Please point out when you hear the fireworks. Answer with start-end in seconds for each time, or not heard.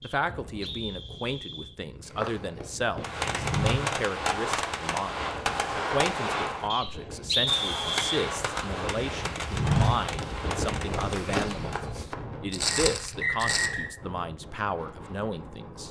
3.0-11.8.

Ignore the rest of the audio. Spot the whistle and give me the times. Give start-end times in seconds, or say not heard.
0.0-1.8, 6.7-8.2, 12.7-13.9.